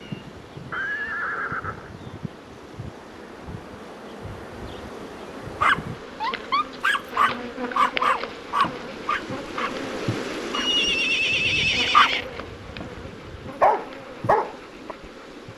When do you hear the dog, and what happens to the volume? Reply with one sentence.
The dog can be heard from 5.6 to 14.9 s, getting quieter then louder.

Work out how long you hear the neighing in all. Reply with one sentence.
You can hear the neighing for 3 seconds altogether.